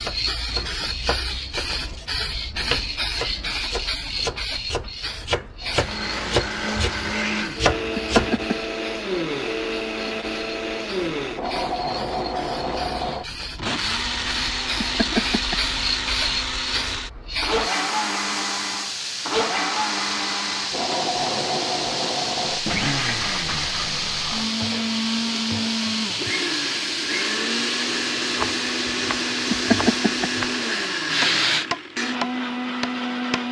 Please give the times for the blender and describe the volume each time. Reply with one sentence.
The blender can be heard from 5.6 to 33.4 s, at a steady volume.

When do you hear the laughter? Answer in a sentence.
You can hear the laughter from 7.9 to 8.6 s, from 14.8 to 15.6 s and from 29.4 to 30.9 s.